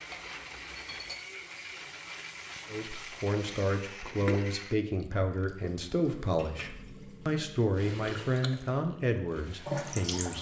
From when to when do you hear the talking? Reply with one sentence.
You can hear the talking from 2.7 to 10.3 s.